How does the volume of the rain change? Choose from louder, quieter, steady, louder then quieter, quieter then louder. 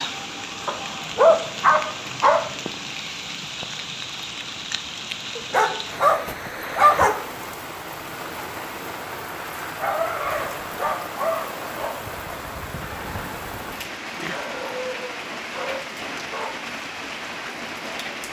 steady.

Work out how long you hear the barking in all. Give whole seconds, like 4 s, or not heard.
8 s.